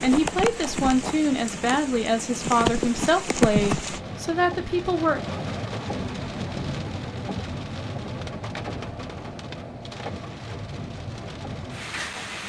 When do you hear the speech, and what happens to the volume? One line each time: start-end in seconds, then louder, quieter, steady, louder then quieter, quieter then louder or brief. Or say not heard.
0.0-5.2 steady.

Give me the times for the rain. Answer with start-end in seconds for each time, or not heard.
0.0-12.4.